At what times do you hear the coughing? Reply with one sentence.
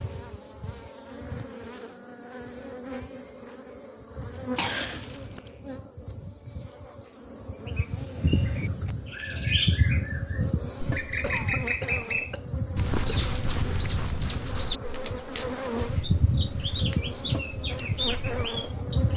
You can hear the coughing from 4.5 to 5.4 s and from 11.2 to 13.4 s.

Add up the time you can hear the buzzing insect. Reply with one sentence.
The buzzing insect can be heard for 19 seconds in total.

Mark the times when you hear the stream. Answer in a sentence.
You can't hear the stream here.